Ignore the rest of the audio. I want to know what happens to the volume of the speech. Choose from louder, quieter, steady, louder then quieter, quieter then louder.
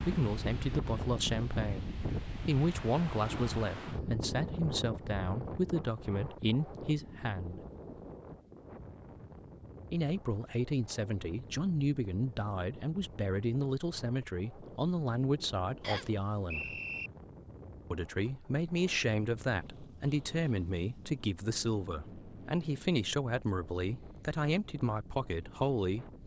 steady.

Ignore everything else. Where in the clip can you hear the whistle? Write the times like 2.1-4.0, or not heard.
15.8-17.1.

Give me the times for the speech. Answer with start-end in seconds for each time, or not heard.
0.0-7.7, 9.9-16.8, 17.9-26.2.